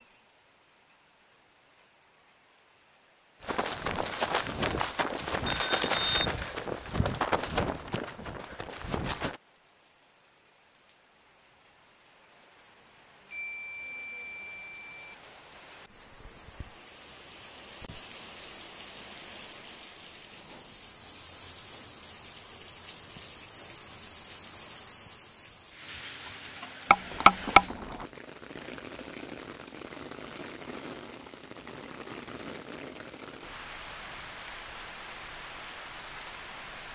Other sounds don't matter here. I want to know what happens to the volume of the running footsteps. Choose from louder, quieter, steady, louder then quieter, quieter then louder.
quieter.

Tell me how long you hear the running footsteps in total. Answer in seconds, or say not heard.
6 s.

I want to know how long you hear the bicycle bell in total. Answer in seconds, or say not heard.
4 s.